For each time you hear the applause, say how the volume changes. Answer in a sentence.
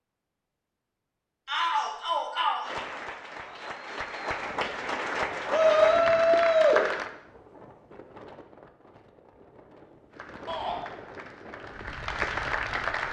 You can hear the applause from 2.6 to 7.1 s, getting louder; and briefly from 10.1 to 13.0 s.